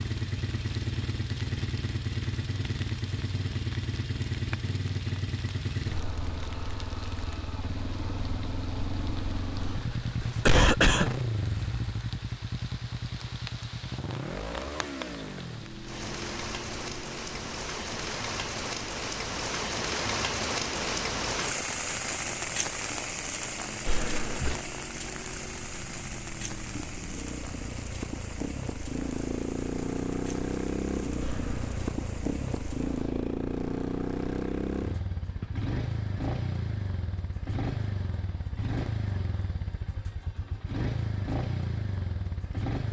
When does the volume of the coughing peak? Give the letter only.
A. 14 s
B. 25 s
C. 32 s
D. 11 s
D.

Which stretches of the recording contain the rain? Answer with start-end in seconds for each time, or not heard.
0.0-33.1.